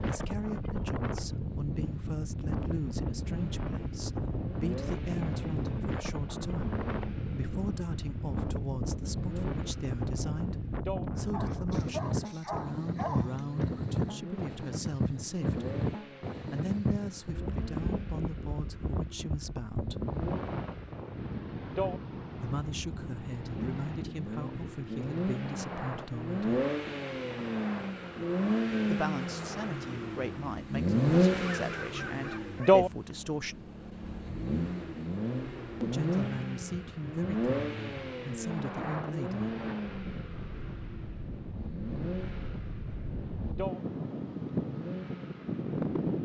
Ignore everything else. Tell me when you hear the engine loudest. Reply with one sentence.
The loudest moment of the engine is at 31 seconds.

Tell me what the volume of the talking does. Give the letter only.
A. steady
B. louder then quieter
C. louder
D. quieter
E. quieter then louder
A.